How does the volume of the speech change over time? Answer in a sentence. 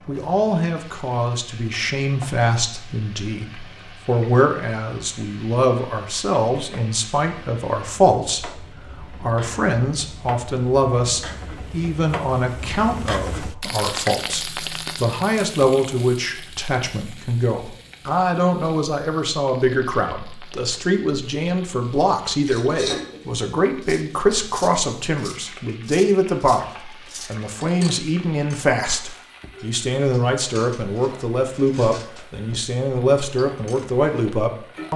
The volume of the speech stays about the same.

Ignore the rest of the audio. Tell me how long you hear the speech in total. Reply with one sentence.
You can hear the speech for 35 seconds altogether.